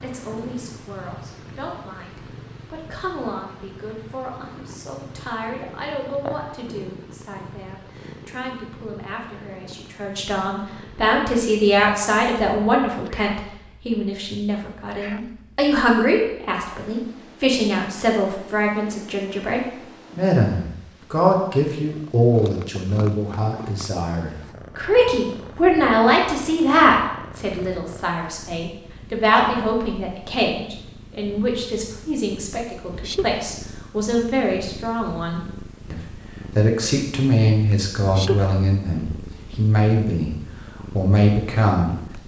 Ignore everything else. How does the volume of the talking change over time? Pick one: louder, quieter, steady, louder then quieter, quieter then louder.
louder.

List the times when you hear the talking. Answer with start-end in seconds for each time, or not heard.
0.0-42.2.